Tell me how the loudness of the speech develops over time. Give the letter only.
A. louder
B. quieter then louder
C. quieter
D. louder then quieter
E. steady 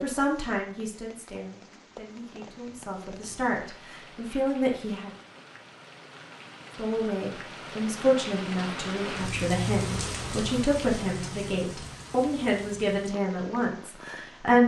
A.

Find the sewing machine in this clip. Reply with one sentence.
You can't hear the sewing machine here.